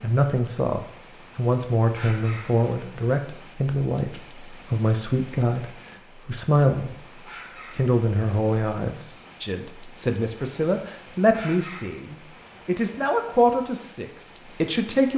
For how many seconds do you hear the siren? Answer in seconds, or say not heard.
not heard.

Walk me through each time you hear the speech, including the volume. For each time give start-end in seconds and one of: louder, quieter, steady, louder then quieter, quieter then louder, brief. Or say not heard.
0.0-15.1 steady.